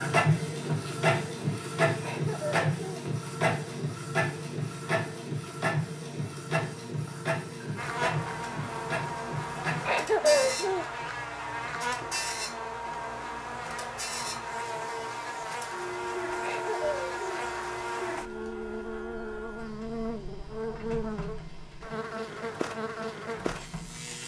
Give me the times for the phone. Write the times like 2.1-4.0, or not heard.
not heard.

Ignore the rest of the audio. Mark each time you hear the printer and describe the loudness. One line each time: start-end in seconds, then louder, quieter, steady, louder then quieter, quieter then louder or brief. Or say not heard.
0.0-24.2 quieter.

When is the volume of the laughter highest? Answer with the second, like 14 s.
10 s.